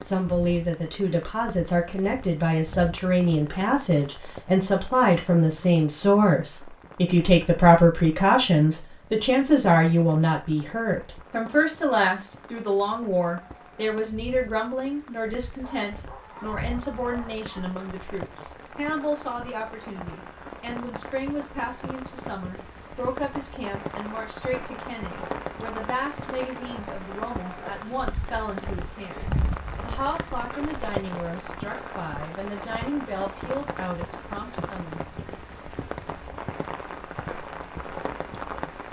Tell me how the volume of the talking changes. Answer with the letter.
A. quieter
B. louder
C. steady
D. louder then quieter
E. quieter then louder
A.